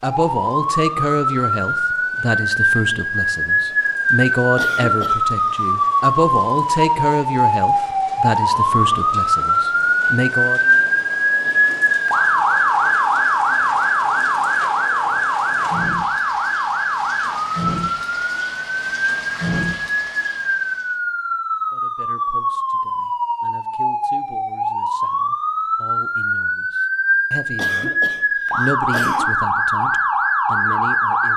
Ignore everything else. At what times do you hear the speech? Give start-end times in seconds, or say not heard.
0.0-10.6, 21.7-31.3.